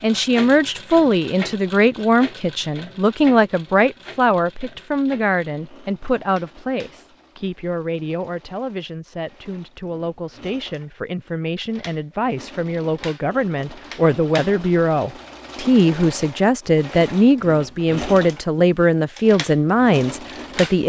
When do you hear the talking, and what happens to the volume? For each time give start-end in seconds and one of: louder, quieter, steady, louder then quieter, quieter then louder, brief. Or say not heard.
0.0-20.8 quieter then louder.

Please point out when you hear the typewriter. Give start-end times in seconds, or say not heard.
not heard.